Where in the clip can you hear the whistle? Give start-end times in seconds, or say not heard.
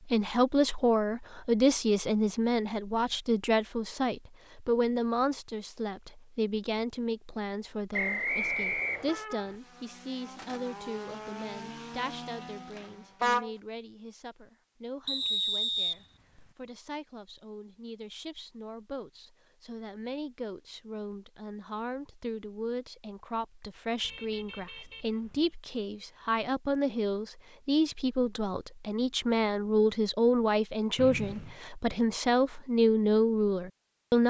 7.9-9.2, 15.1-16.4, 30.9-31.6.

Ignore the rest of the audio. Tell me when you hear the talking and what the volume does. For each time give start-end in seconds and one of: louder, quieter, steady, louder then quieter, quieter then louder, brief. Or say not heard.
0.1-34.2 quieter then louder.